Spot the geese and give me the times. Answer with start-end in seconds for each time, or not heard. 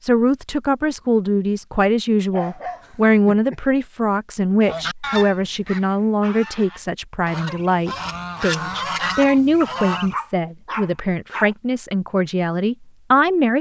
4.6-10.2.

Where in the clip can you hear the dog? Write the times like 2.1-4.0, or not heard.
2.3-3.6, 9.6-11.6.